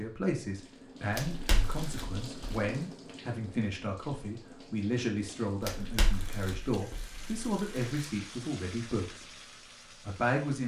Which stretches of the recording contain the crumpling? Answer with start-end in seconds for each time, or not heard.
1.1-2.6, 5.6-8.1.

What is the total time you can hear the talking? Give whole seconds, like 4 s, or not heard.
10 s.